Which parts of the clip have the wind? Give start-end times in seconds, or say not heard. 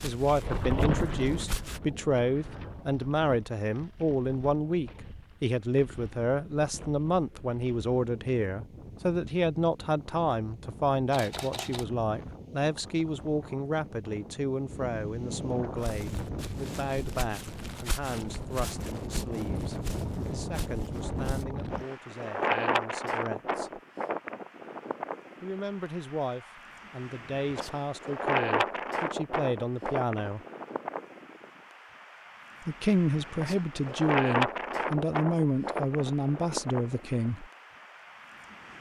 0.0-38.7.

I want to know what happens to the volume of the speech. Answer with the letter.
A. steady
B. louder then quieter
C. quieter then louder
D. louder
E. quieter
C.